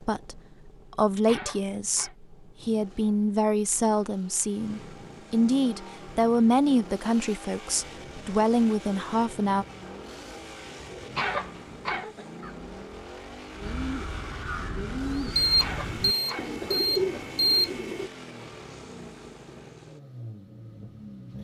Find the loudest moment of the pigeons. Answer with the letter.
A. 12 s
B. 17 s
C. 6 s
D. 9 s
B.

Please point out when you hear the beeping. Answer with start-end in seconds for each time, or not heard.
15.3-18.1.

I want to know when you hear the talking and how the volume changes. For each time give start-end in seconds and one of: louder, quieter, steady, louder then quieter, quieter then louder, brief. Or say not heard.
0.0-9.7 steady.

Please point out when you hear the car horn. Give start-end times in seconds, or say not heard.
not heard.